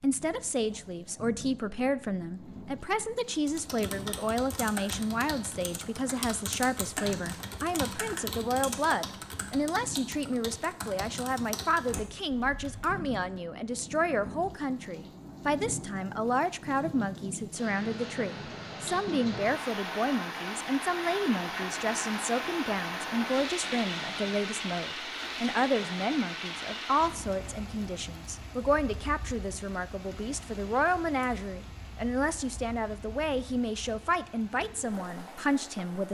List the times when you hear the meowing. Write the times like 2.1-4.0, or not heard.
not heard.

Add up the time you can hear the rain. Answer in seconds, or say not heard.
36 s.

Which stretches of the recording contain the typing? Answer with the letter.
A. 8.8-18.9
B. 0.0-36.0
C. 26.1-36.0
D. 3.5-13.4
D.